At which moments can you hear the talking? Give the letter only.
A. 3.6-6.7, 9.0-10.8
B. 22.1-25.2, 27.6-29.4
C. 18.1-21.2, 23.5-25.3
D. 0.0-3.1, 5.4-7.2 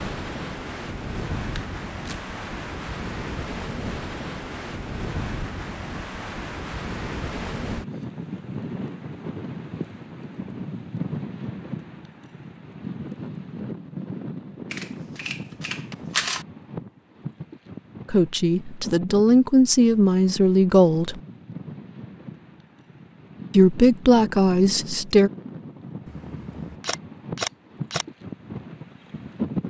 C.